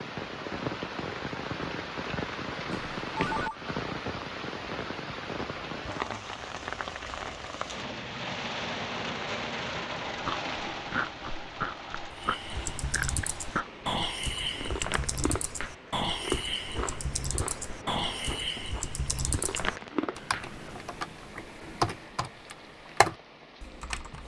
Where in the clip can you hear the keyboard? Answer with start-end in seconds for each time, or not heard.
12.1-24.2.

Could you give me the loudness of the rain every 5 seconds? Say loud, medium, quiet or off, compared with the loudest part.
loud, loud, medium, quiet, quiet.